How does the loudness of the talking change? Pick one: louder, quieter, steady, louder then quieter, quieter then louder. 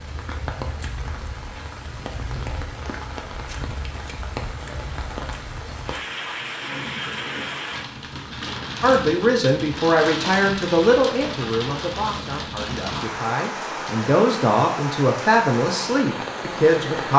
quieter then louder.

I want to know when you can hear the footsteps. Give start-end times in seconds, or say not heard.
not heard.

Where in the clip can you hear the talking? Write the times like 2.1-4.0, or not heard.
8.8-17.1.